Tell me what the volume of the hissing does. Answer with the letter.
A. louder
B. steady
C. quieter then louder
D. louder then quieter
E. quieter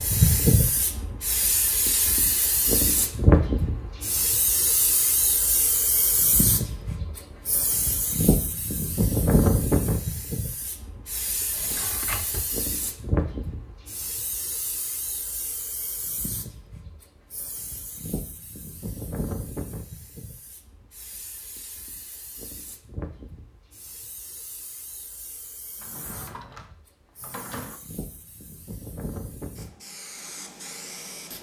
E.